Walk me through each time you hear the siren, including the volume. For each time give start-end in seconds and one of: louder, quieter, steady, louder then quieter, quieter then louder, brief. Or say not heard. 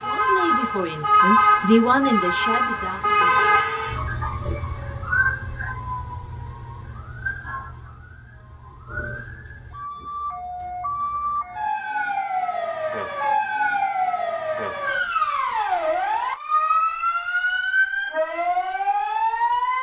0.0-19.7 quieter then louder.